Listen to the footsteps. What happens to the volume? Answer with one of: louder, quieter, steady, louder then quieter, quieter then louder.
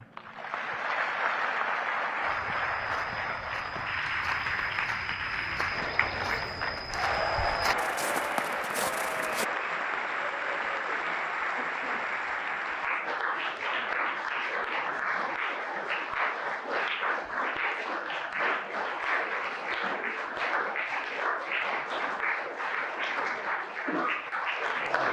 louder.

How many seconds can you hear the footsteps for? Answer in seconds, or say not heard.
7 s.